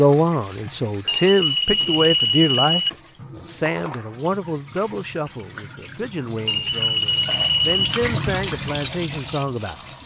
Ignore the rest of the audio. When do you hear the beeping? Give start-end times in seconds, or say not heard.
1.1-2.9, 6.5-7.8.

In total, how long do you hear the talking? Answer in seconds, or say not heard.
10 s.